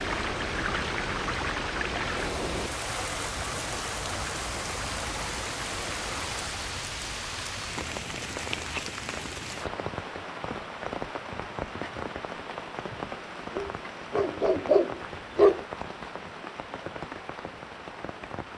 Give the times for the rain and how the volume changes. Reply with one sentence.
The rain can be heard from 0.0 to 18.5 s, getting quieter.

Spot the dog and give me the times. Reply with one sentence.
The dog can be heard from 13.6 to 15.6 s.